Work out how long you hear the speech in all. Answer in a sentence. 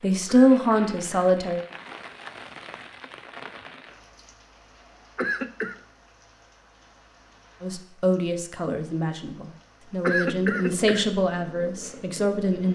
The speech can be heard for 7 seconds in total.